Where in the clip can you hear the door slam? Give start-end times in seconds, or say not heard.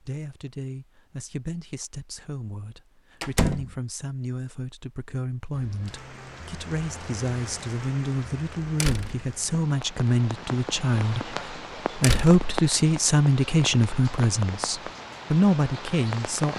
3.2-3.8, 8.8-9.2, 12.0-12.4.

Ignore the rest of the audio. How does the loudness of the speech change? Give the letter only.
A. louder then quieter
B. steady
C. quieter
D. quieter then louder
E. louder
E.